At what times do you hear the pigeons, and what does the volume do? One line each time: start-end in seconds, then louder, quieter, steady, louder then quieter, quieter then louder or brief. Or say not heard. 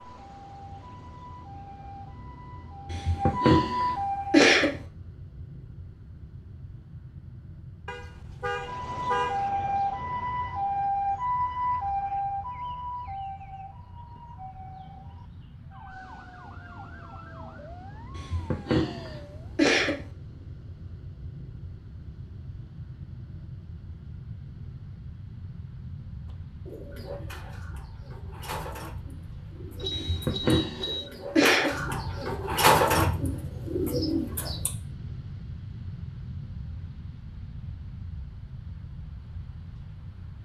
26.2-34.7 louder.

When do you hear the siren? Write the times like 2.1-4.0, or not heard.
0.0-4.5, 8.5-19.6.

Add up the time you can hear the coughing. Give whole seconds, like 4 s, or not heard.
6 s.